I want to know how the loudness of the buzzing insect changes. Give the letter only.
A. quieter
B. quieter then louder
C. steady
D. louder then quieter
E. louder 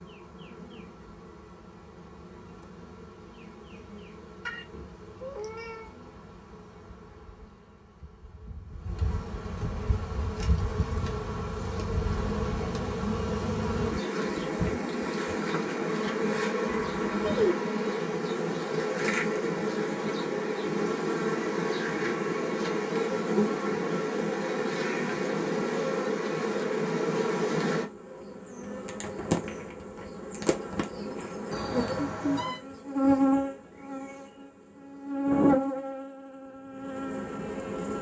E.